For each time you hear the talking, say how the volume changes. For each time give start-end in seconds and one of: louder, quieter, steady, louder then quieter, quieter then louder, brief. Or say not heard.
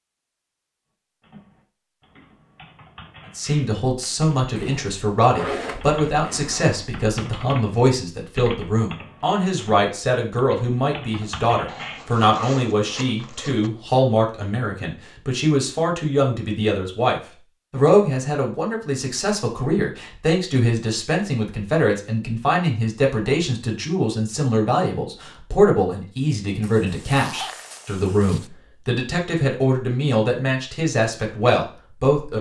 3.4-32.3 steady.